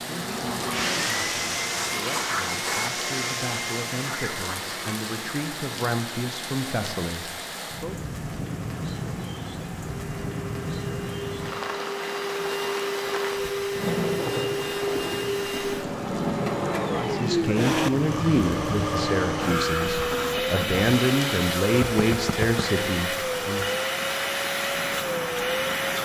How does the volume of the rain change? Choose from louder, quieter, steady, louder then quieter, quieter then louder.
steady.